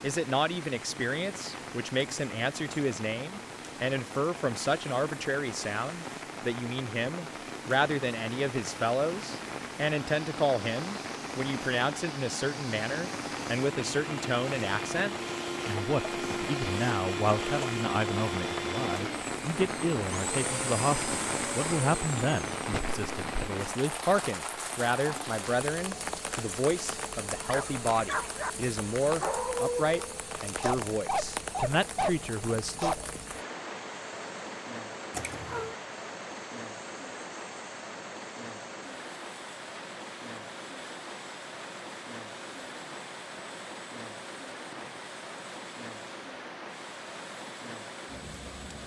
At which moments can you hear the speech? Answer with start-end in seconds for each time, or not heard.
0.0-33.0.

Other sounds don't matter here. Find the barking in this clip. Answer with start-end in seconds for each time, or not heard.
27.4-33.0.